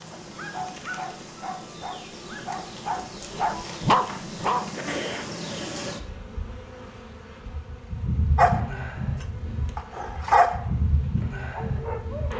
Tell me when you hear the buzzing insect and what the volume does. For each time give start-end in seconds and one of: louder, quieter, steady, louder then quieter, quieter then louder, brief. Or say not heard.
0.0-12.3 louder.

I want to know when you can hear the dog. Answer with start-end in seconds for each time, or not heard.
0.1-5.2, 8.3-12.3.